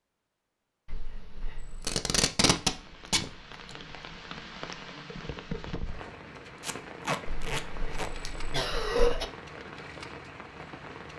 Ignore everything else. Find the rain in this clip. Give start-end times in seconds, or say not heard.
2.5-11.1.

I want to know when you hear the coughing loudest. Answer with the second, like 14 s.
9 s.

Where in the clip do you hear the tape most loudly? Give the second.
3 s.